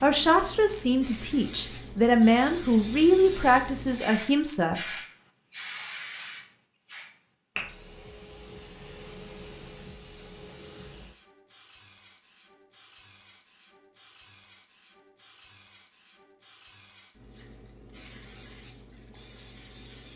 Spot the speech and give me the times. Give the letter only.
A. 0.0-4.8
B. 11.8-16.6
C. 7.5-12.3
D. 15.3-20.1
A.